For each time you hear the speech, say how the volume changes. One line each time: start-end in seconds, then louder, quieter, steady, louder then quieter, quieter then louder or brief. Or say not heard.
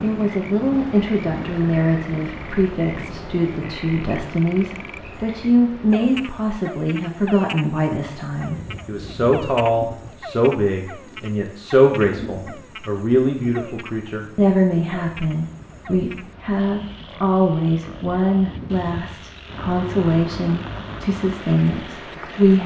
0.0-22.6 steady.